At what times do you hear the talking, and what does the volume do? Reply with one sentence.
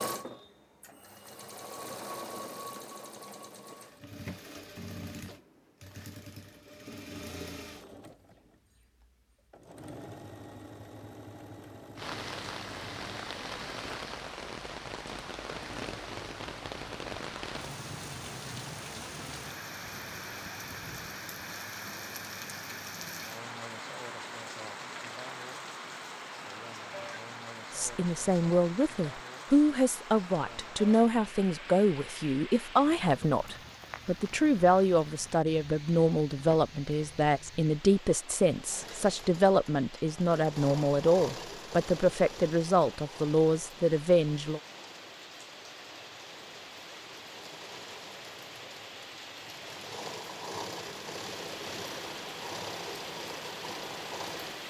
The talking can be heard from 27.7 to 44.6 s, at a steady volume.